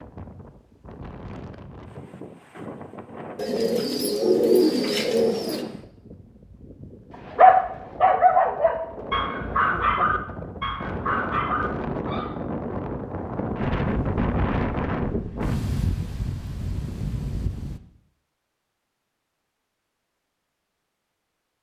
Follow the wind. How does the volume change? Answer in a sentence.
The loudness of the wind goes up.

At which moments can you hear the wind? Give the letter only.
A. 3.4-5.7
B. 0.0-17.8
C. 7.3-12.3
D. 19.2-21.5
B.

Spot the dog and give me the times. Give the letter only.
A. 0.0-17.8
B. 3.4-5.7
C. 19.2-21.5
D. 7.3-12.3
D.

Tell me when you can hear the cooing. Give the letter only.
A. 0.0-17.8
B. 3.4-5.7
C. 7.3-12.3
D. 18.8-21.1
B.